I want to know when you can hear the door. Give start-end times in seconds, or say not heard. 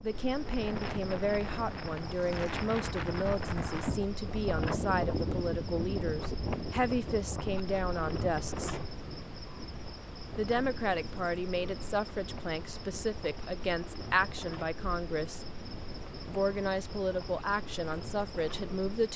not heard.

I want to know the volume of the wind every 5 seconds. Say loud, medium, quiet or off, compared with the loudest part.
loud, loud, medium, medium.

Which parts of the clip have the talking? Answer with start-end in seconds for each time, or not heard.
0.0-8.8, 10.3-15.4, 16.2-19.1.